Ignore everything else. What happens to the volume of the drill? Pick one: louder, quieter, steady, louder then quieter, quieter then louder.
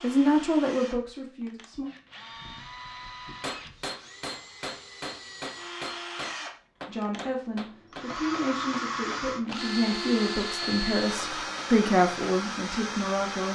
louder.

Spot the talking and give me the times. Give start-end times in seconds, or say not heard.
0.0-1.9, 6.8-13.5.